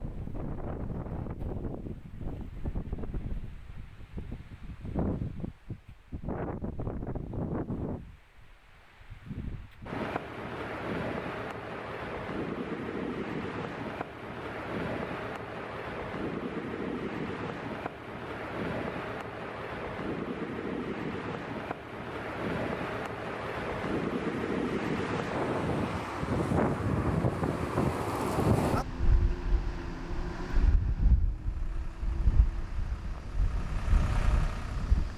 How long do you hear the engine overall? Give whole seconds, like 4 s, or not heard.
4 s.